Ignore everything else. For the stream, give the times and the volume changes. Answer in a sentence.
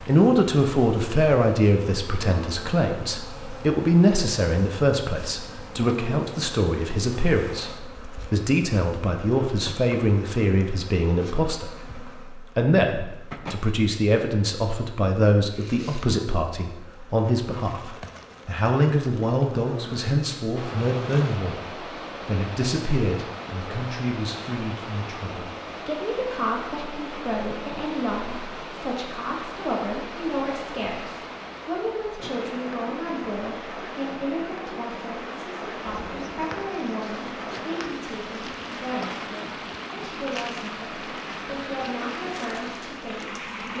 You can hear the stream from 20.6 to 43.7 s, at a steady volume.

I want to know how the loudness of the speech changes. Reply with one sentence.
The loudness of the speech goes down.